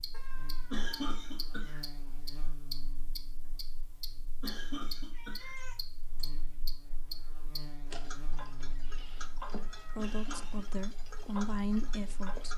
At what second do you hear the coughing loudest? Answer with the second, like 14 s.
1 s.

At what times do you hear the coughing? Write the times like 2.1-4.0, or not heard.
0.7-2.0, 4.4-5.7, 9.9-10.8.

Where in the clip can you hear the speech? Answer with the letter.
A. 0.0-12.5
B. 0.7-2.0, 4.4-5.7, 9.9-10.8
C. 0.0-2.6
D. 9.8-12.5
D.